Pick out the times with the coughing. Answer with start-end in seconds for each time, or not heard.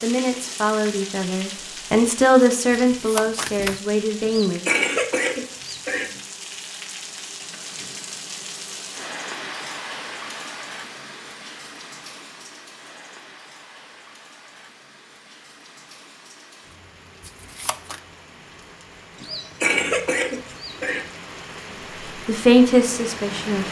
4.2-6.1, 19.2-21.1.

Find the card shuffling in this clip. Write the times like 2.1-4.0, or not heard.
2.9-3.8, 17.2-18.0.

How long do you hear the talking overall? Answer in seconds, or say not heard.
6 s.